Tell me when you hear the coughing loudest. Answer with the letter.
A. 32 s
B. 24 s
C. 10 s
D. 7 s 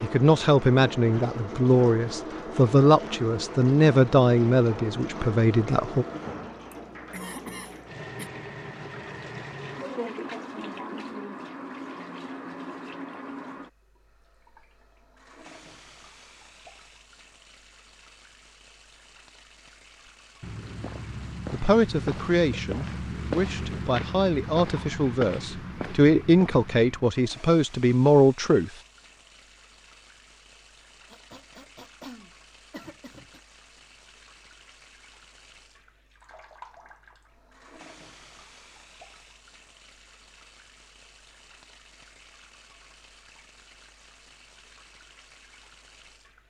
D.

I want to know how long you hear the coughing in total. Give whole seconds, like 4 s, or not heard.
4 s.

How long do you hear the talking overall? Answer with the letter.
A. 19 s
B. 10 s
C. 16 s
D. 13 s
D.